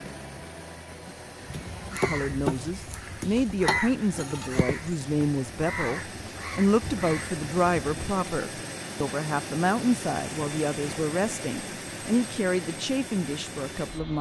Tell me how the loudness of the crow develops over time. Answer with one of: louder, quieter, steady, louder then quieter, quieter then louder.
quieter.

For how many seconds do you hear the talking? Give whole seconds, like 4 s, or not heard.
12 s.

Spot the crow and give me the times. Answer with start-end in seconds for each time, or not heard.
1.4-8.2.